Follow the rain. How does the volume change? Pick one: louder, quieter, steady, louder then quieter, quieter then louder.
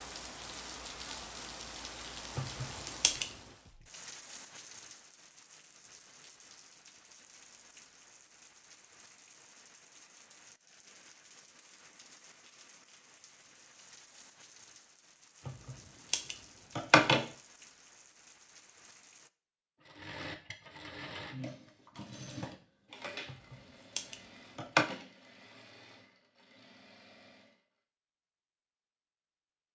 quieter.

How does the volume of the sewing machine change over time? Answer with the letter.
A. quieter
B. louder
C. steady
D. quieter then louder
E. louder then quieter
A.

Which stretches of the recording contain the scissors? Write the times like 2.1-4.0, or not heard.
2.4-3.3, 15.4-17.2, 23.2-24.9.